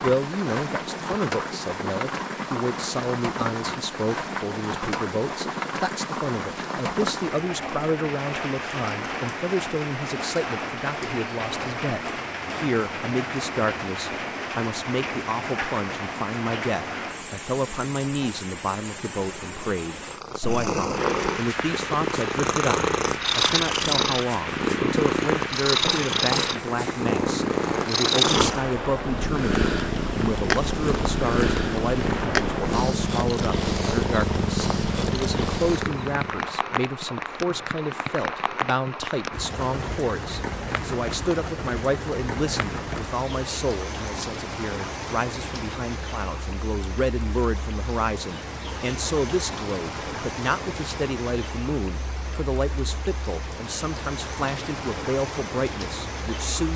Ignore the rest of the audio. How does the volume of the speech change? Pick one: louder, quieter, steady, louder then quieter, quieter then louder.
steady.